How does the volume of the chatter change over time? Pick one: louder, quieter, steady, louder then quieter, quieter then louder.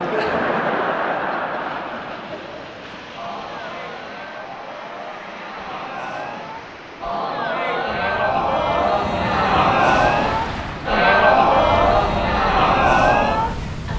quieter then louder.